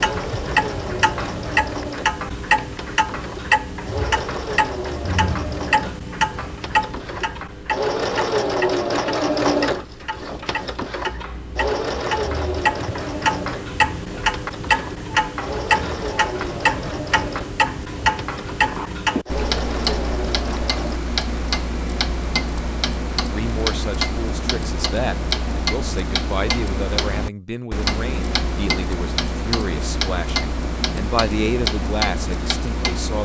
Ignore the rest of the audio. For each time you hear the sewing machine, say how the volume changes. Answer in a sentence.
The sewing machine can be heard from 0.0 to 21.0 s, getting louder then quieter.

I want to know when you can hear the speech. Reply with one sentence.
The speech can be heard from 23.3 to 33.2 s.